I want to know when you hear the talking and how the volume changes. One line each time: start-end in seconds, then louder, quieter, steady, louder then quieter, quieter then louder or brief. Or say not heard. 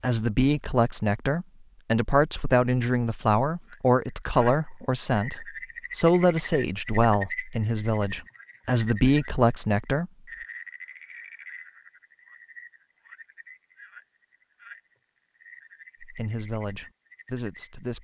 0.0-10.1 steady
16.0-17.9 brief.